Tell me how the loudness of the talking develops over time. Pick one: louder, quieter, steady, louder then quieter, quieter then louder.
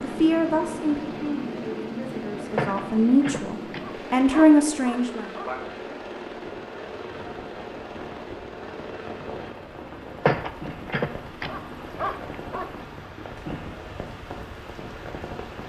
quieter then louder.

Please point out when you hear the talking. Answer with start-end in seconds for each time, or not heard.
0.0-5.3.